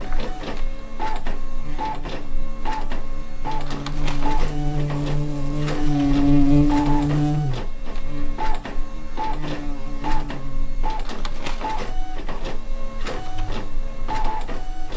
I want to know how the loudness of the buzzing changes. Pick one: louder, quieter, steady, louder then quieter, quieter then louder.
louder then quieter.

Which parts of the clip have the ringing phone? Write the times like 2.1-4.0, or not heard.
not heard.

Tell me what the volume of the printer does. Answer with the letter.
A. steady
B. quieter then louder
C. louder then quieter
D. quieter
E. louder
A.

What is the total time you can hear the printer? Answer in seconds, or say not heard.
15 s.